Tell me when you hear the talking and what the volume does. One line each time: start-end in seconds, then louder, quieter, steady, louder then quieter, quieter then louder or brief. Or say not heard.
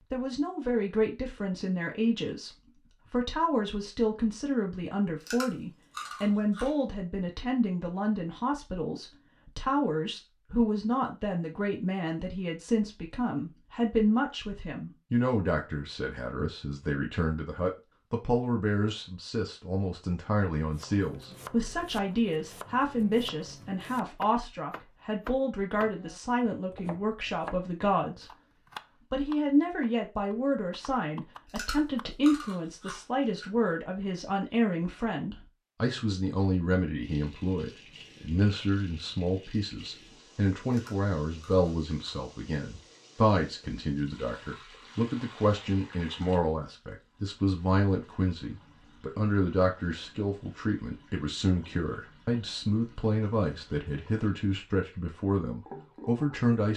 0.1-28.4 steady
29.0-56.7 steady.